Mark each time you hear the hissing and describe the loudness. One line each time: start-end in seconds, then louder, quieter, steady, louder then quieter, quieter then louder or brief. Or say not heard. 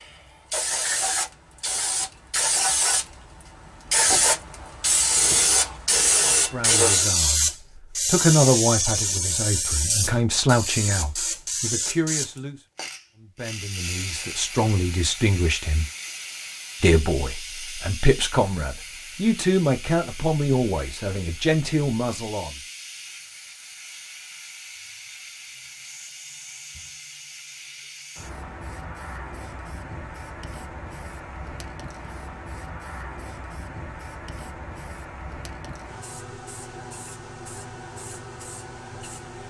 0.0-39.4 quieter.